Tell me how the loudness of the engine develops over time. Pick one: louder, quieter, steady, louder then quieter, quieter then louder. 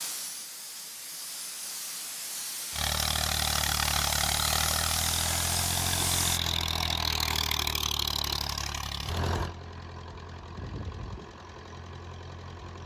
quieter.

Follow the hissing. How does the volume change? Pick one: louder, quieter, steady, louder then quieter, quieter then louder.
louder.